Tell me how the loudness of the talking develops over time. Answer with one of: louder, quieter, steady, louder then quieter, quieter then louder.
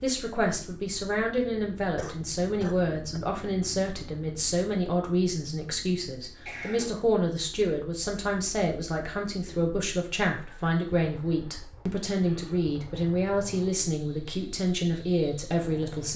steady.